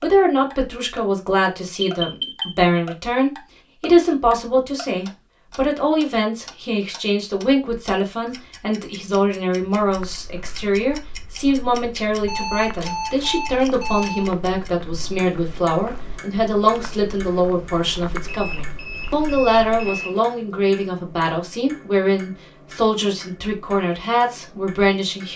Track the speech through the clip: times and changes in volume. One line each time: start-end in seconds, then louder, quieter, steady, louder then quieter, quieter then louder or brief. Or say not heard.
0.0-25.3 steady.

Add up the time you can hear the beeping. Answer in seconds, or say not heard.
5 s.